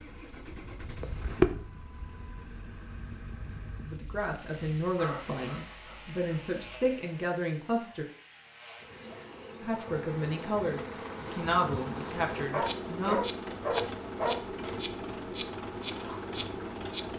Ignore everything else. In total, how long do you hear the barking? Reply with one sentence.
The barking can be heard for 4 seconds in total.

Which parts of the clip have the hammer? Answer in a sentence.
You can't hear the hammer here.